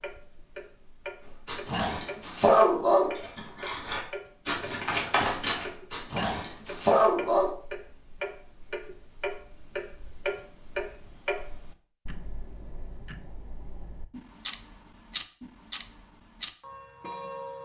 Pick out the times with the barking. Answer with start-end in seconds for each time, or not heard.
1.4-7.5.